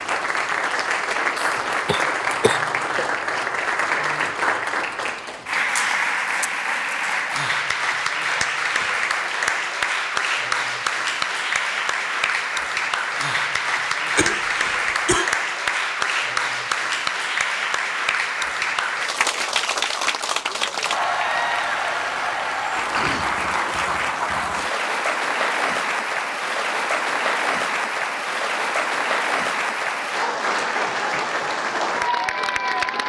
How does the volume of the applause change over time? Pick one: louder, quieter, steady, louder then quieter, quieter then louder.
steady.